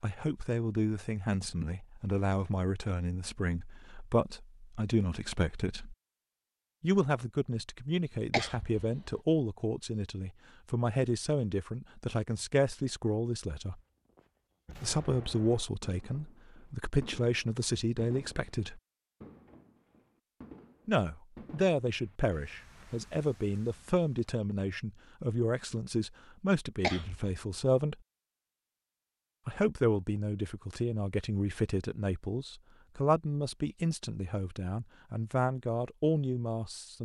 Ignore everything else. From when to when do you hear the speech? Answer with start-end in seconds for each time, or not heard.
0.0-6.0, 6.8-13.8, 14.8-18.8, 20.9-27.9, 29.4-36.9.